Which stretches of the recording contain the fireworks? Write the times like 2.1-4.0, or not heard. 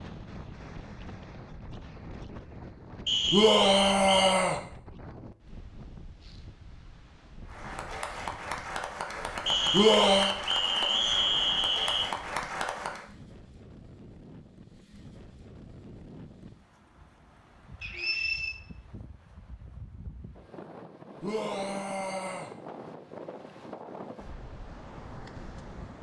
not heard.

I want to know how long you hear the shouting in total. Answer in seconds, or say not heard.
3 s.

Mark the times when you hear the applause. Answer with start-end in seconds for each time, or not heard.
7.5-13.1.